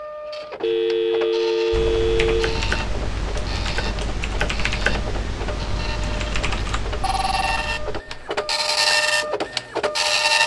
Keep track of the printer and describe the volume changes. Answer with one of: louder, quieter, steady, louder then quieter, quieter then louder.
louder.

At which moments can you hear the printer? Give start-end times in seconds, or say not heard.
0.0-10.4.